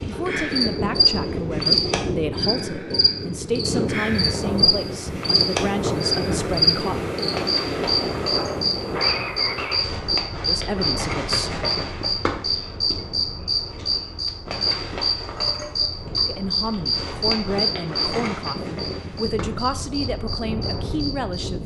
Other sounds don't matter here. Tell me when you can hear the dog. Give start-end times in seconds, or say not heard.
not heard.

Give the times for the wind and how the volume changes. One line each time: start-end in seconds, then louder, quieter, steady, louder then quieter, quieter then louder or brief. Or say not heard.
0.0-21.6 quieter then louder.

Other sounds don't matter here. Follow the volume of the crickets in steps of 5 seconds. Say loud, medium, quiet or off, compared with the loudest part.
loud, loud, loud, loud, quiet.